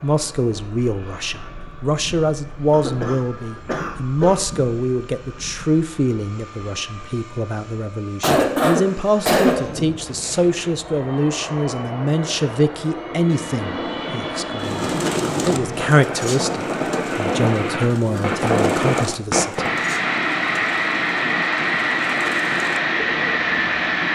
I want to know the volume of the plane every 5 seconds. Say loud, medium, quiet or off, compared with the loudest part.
quiet, quiet, medium, loud, loud.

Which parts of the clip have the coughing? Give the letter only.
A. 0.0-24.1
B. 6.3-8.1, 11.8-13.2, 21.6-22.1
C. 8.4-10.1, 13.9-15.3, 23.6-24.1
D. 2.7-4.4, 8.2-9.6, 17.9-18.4
D.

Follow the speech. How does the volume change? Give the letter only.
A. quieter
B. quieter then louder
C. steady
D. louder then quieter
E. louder
C.